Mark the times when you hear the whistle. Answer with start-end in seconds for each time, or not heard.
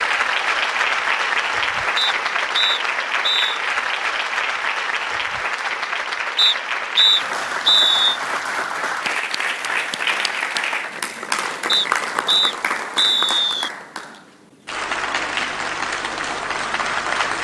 1.9-3.6, 6.3-8.2, 11.7-13.7.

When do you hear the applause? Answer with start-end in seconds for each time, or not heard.
0.0-17.3.